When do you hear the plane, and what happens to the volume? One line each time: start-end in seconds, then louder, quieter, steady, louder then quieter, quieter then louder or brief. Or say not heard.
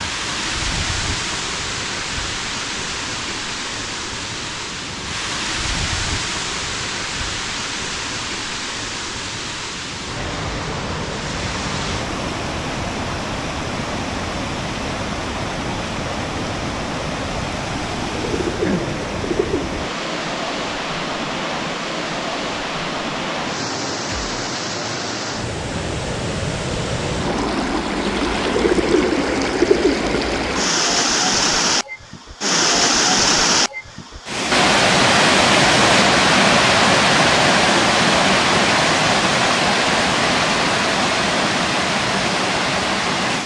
not heard.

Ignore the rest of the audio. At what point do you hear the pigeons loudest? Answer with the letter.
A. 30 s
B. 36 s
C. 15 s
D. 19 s
A.